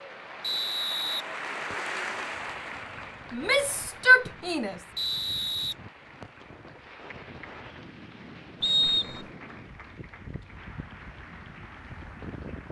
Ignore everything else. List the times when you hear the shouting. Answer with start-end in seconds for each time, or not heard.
3.3-4.8.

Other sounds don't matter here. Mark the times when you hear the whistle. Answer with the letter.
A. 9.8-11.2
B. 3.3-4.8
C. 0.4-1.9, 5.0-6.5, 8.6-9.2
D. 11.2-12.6
C.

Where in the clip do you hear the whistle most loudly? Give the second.
9 s.